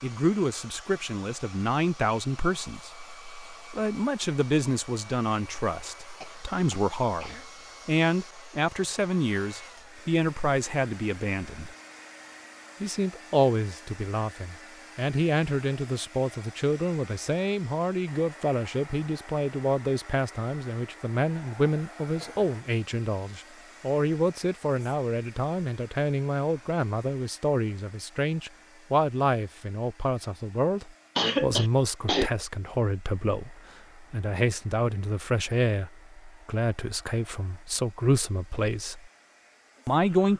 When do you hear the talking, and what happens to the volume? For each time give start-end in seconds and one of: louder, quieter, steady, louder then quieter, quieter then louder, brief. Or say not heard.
0.0-11.8 steady
12.8-39.1 steady
39.9-40.3 brief.